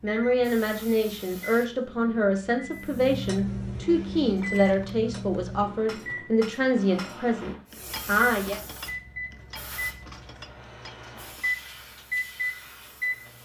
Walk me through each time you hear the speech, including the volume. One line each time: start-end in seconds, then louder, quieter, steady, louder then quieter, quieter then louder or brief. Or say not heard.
0.0-8.6 steady.